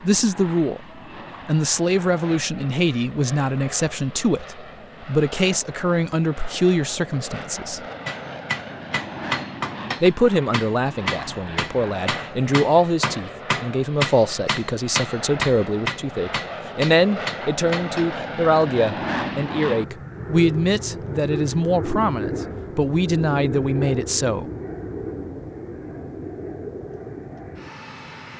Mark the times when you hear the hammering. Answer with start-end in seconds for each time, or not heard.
8.1-18.2.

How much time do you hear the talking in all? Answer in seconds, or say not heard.
22 s.